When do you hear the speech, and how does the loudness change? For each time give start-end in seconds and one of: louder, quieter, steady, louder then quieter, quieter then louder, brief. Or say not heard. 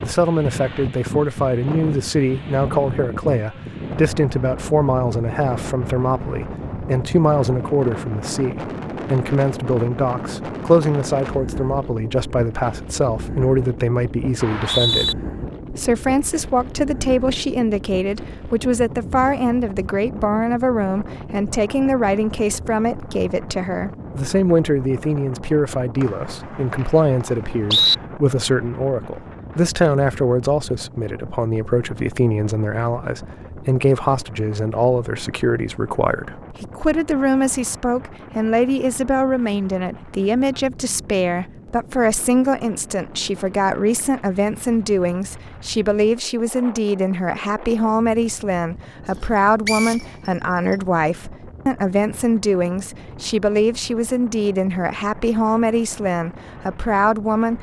0.0-57.5 steady.